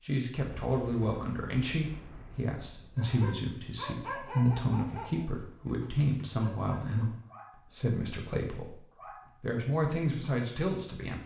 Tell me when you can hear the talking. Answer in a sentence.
You can hear the talking from 0.0 to 11.2 s.